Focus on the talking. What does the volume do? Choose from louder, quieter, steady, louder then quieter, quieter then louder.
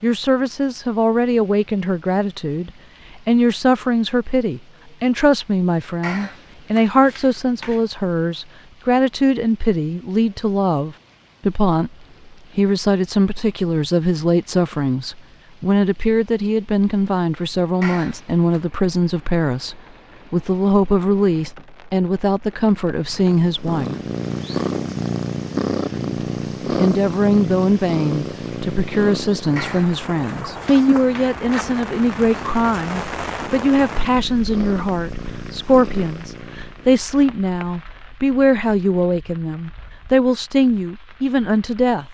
steady.